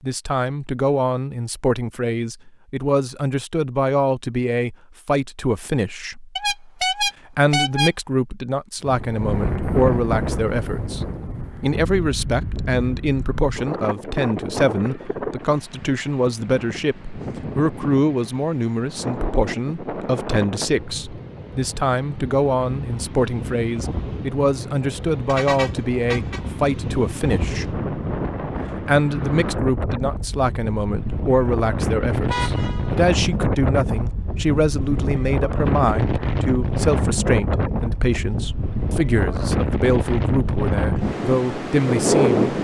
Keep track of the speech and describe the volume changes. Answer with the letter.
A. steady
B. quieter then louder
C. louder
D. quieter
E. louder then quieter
A.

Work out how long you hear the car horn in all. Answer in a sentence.
You can hear the car horn for 3 seconds altogether.